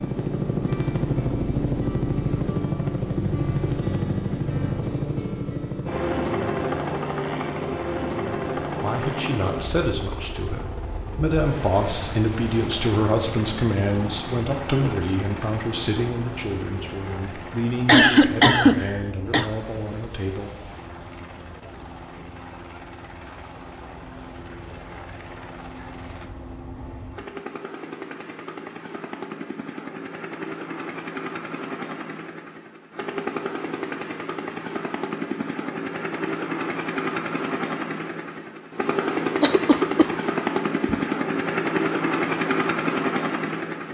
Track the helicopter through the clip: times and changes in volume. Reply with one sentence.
The helicopter can be heard from 0.0 to 43.8 s, getting quieter then louder.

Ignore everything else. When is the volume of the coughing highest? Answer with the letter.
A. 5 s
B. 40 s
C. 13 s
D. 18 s
D.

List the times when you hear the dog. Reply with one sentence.
You can't hear the dog here.